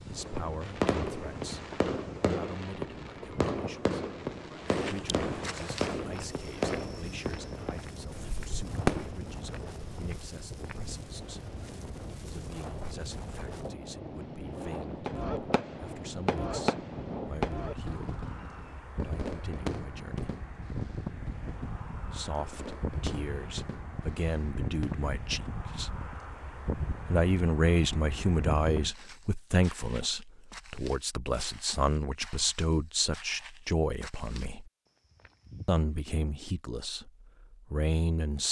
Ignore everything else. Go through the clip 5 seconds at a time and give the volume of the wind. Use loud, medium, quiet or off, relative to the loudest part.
medium, medium, loud, loud, loud, loud, off, off.